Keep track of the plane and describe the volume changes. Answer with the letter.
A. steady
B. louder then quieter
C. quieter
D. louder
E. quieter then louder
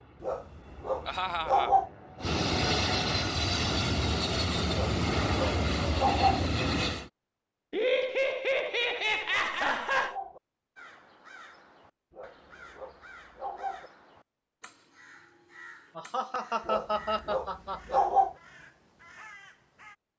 D.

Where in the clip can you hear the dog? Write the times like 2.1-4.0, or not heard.
0.2-1.9, 4.7-6.5, 8.7-10.4, 12.1-13.9, 16.6-18.4.